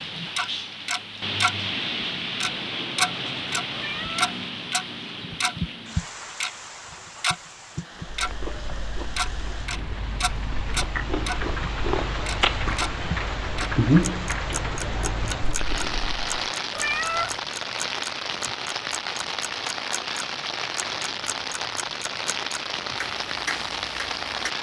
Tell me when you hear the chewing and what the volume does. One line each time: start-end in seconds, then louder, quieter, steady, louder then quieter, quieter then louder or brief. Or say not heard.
8.0-16.2 louder then quieter.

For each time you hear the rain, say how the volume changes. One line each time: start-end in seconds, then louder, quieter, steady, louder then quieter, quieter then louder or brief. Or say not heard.
0.0-24.5 quieter then louder.